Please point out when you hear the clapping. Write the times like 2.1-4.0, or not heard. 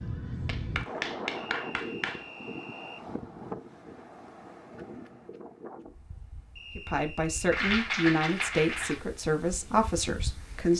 0.5-2.2, 7.5-9.0.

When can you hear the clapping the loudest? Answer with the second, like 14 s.
8 s.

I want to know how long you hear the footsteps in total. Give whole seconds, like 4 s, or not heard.
not heard.